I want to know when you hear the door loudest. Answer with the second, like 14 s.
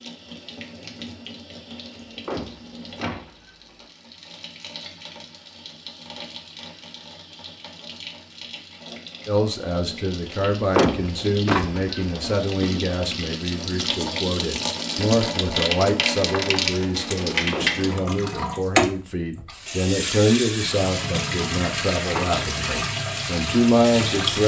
11 s.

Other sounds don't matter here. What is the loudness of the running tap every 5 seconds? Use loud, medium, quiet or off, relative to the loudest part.
quiet, quiet, medium, loud, loud.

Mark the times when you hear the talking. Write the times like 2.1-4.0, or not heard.
9.2-24.4.